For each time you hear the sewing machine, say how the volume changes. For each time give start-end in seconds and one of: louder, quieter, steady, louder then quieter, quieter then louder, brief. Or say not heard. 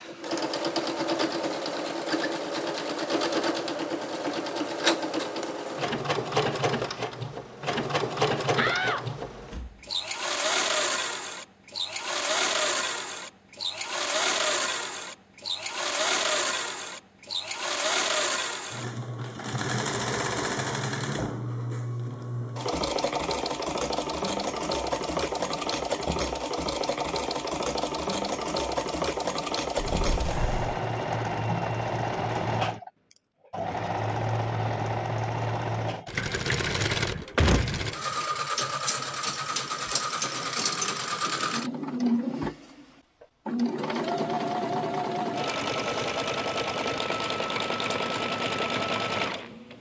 0.0-49.7 steady.